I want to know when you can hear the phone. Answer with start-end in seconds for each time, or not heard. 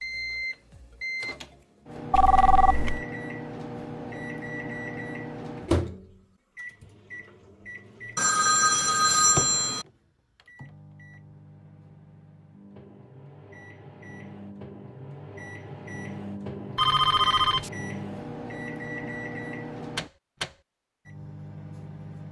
2.1-3.0, 8.2-9.8, 16.8-17.7.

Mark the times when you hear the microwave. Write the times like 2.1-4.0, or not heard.
0.0-22.2.